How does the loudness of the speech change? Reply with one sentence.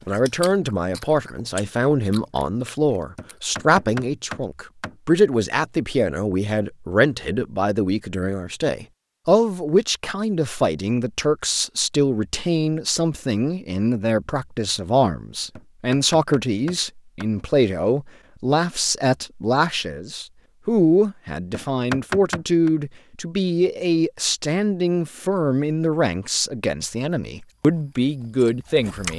The volume of the speech stays about the same.